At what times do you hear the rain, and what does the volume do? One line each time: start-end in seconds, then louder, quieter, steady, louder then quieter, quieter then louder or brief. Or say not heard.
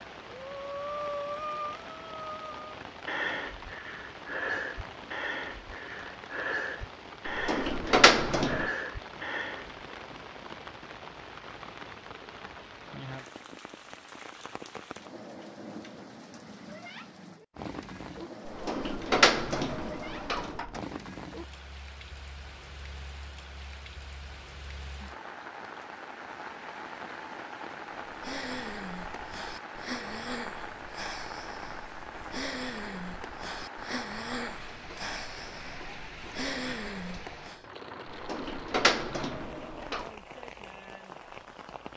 0.0-41.9 steady.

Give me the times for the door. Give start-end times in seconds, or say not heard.
7.2-8.7, 18.4-20.8, 38.0-40.0.